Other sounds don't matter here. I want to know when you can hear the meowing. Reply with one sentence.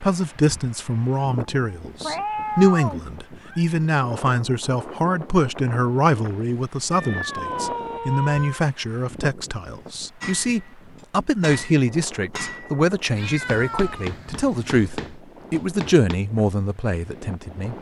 The meowing can be heard from 2.0 to 3.8 s, from 6.9 to 8.7 s and from 13.2 to 15.1 s.